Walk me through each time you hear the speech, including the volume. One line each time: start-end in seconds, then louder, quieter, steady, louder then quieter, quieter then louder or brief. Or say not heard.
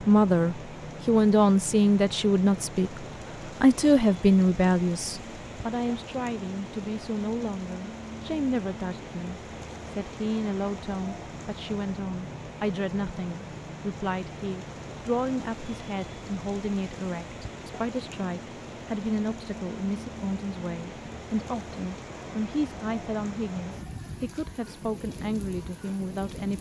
0.1-26.5 quieter.